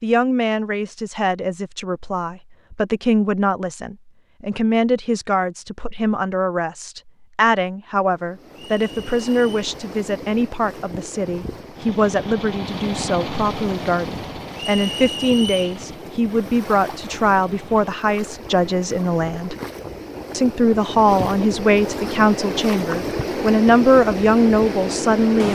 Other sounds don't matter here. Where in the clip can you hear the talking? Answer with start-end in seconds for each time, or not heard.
0.0-19.6, 20.3-25.5.